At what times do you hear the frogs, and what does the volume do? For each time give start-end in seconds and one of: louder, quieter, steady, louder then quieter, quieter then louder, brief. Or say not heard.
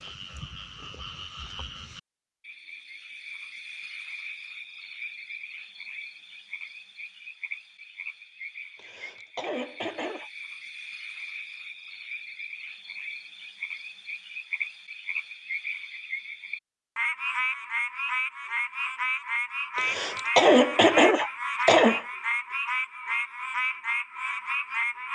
0.0-25.0 louder.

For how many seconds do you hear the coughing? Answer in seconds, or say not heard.
4 s.